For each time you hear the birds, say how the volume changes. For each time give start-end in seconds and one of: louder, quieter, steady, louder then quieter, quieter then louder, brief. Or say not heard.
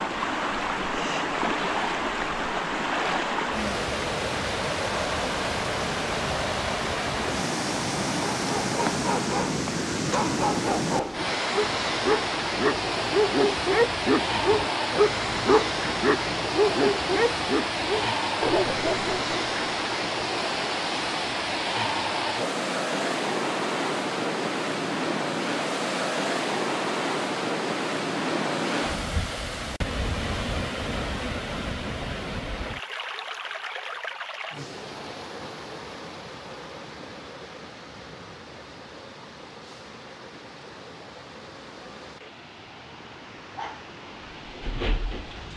not heard.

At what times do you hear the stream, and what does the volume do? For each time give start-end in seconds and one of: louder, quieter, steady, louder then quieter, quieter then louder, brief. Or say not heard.
0.0-45.5 quieter.